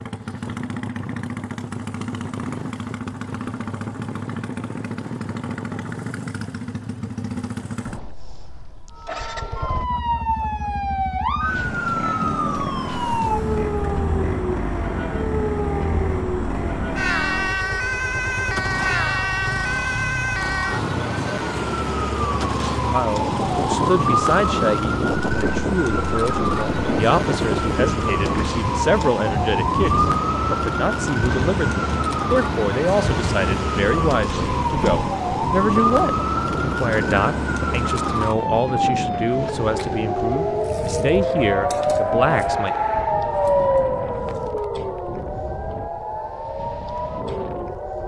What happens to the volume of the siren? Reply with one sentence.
The loudness of the siren stays about the same.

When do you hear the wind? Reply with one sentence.
You can hear the wind from 23.2 to 48.0 s.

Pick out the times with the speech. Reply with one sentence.
The speech can be heard from 22.9 to 42.8 s.